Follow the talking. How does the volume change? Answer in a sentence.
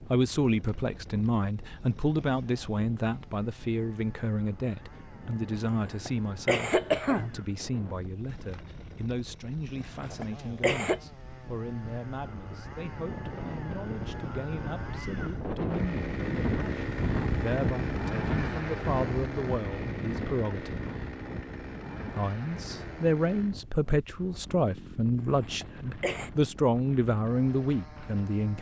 The volume of the talking goes down, then up.